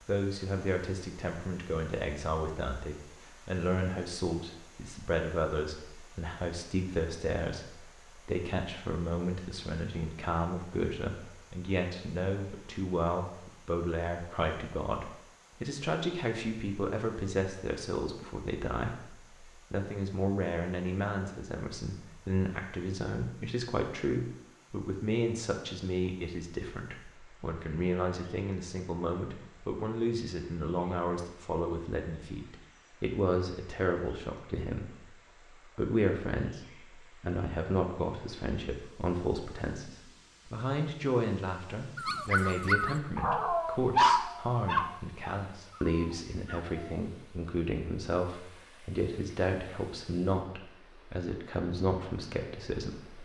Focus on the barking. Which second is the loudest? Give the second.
44 s.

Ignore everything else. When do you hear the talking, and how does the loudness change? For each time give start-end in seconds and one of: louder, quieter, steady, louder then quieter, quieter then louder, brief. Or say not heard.
0.1-53.2 steady.